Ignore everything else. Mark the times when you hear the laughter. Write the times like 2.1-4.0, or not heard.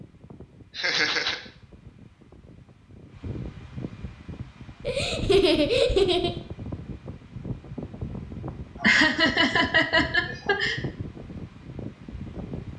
0.8-1.4, 4.8-6.3, 8.8-10.8.